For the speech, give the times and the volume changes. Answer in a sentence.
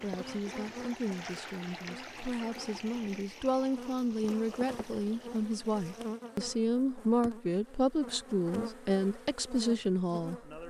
The speech can be heard from 0.0 to 10.6 s, getting louder.